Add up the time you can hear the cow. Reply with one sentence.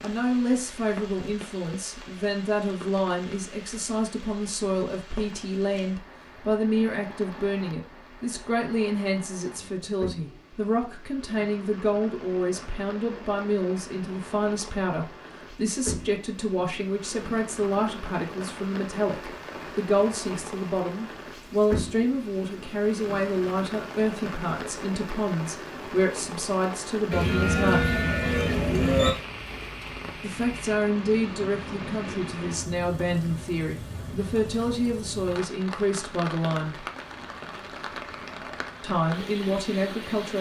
The cow can be heard for 2 seconds in total.